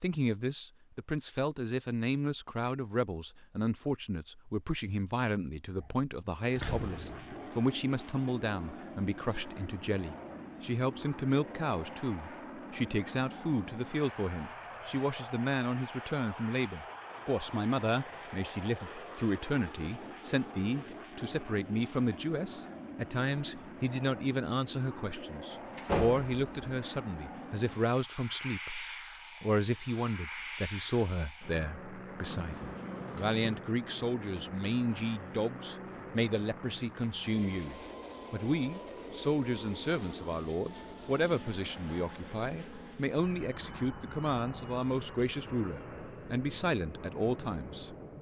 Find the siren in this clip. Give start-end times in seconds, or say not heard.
not heard.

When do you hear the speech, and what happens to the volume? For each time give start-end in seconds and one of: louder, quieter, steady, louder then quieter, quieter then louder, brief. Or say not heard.
0.0-48.0 steady.